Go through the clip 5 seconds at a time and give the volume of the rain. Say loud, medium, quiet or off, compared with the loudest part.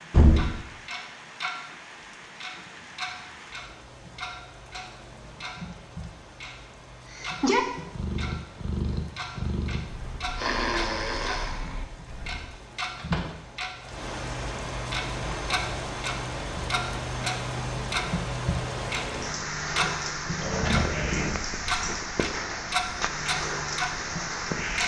quiet, quiet, medium, loud, loud.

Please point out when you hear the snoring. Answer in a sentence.
You can hear the snoring from 7.1 to 12.4 s.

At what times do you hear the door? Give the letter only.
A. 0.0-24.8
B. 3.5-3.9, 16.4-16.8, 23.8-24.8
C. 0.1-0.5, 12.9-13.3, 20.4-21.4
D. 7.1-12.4
C.